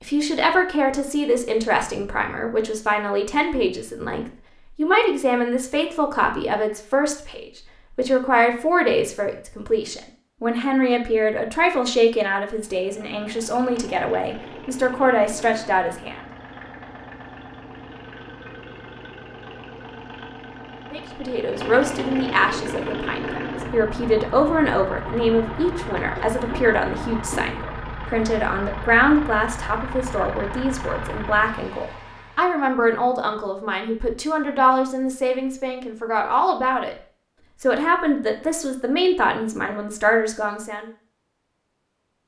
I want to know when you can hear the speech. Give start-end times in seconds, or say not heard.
0.0-16.2, 20.9-37.0, 37.6-40.9.